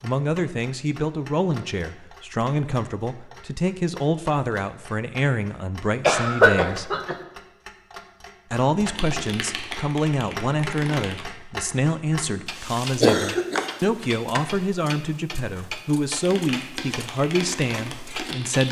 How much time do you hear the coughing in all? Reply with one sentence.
The coughing can be heard for 3 seconds in total.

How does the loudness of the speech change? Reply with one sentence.
The loudness of the speech stays about the same.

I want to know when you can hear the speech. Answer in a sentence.
You can hear the speech from 0.0 to 6.9 s and from 8.5 to 18.6 s.